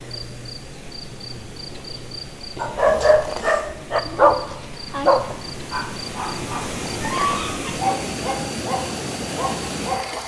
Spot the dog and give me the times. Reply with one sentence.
The dog can be heard from 2.6 to 10.1 s.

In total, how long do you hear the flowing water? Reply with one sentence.
The flowing water can be heard for 10 seconds in total.